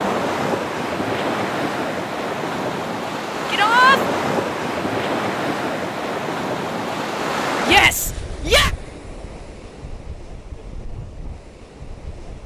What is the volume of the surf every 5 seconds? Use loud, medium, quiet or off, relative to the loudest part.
loud, loud, quiet.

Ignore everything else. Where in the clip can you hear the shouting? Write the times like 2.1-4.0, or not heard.
3.5-4.0, 7.6-8.7.